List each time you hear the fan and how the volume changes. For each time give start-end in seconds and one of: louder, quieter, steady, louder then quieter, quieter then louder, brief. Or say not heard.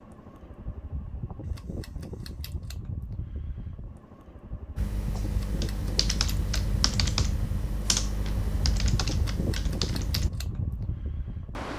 0.0-11.7 louder.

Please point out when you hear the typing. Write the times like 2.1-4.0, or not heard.
4.8-10.3.